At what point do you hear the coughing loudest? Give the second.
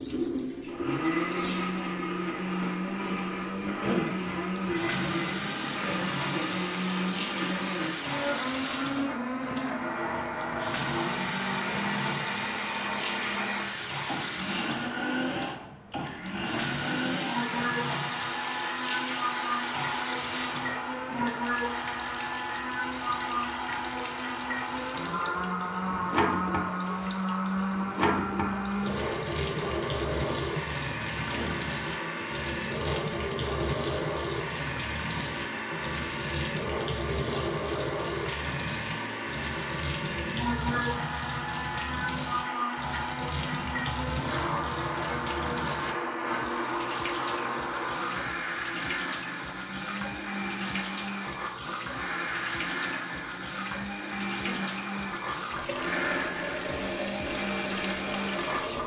4 s.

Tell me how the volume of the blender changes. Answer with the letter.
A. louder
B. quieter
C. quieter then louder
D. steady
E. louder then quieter
D.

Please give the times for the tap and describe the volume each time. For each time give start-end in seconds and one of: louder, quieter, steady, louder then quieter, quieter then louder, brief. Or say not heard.
0.0-58.8 steady.